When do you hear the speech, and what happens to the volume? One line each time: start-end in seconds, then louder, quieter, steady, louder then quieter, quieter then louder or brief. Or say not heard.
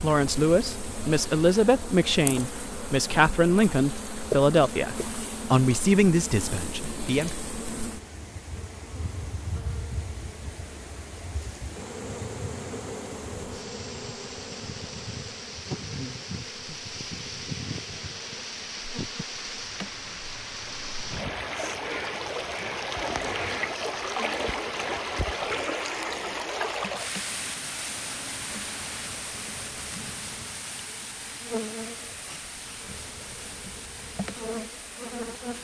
0.0-7.3 steady.